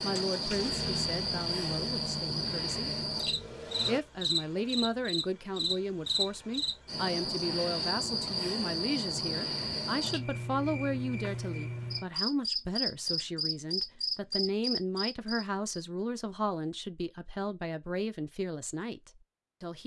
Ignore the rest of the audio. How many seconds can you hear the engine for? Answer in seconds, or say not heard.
4 s.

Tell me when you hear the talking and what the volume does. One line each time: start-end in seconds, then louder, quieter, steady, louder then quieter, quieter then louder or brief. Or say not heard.
0.0-2.9 brief
3.9-19.8 steady.